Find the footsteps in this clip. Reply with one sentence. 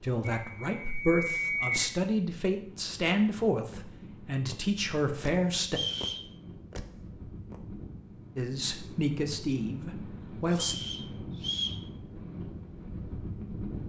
The footsteps can't be heard in this clip.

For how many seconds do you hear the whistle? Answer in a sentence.
You can hear the whistle for 3 seconds altogether.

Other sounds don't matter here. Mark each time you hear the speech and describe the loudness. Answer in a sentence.
You can hear the speech from 0.0 to 5.8 s, at a steady volume; and briefly from 8.3 to 10.8 s.